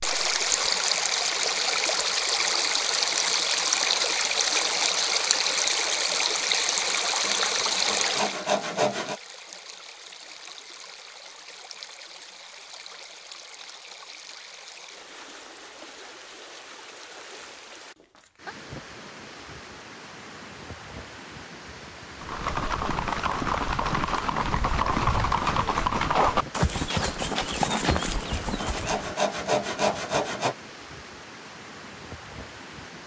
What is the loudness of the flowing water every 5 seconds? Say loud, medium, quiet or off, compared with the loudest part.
loud, loud, quiet, quiet, quiet, quiet, quiet.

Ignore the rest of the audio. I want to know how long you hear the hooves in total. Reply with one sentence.
The hooves can be heard for 7 seconds in total.